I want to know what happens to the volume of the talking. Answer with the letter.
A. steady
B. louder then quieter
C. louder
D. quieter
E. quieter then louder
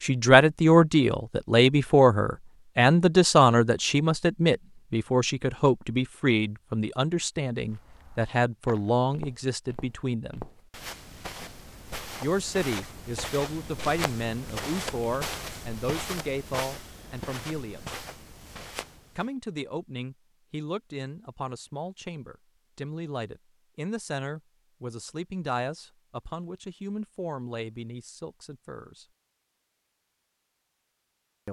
D.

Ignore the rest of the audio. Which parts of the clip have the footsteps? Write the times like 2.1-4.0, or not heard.
7.5-19.3.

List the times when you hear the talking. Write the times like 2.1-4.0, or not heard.
0.0-10.4, 12.2-17.9, 19.1-29.1.